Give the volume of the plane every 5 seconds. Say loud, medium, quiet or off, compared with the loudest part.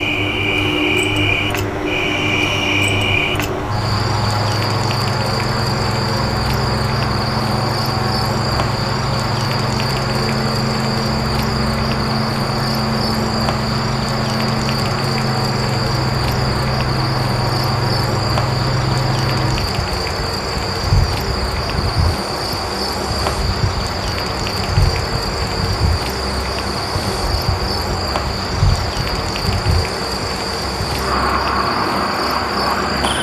loud, loud, loud, loud, medium, medium, loud.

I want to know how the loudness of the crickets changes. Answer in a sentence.
The loudness of the crickets stays about the same.